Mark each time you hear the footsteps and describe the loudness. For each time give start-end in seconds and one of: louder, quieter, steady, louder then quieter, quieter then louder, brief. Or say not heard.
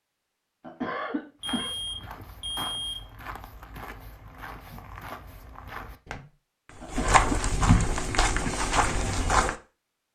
1.4-9.6 louder.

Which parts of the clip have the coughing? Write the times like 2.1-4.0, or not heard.
0.6-1.7, 6.8-7.9.